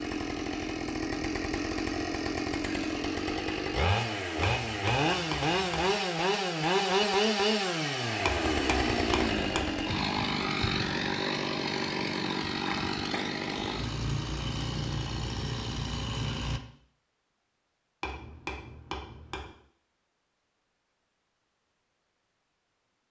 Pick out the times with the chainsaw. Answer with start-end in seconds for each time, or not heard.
0.0-16.6.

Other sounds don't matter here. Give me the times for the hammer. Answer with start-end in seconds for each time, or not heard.
4.7-6.0, 8.2-9.8, 18.0-19.6.